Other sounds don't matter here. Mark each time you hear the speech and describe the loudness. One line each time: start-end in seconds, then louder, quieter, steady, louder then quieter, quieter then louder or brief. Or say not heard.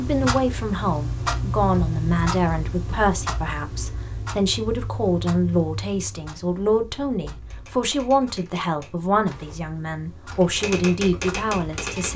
0.0-12.1 steady.